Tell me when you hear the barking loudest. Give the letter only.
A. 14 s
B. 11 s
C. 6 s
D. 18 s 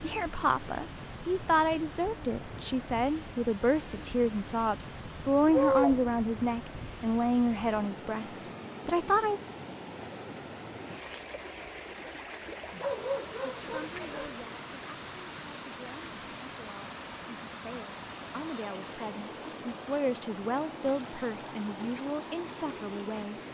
C.